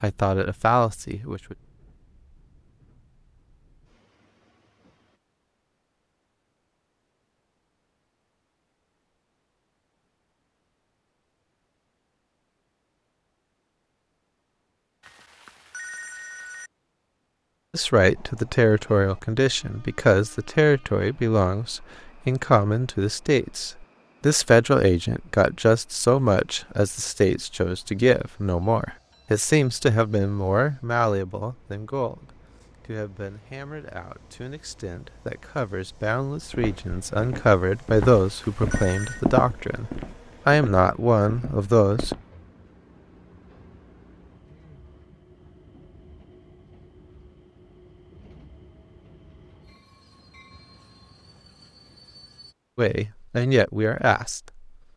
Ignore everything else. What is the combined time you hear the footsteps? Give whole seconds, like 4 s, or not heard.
6 s.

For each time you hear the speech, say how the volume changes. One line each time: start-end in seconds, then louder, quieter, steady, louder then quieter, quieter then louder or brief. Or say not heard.
0.0-1.6 brief
17.7-42.1 quieter then louder
52.8-54.7 brief.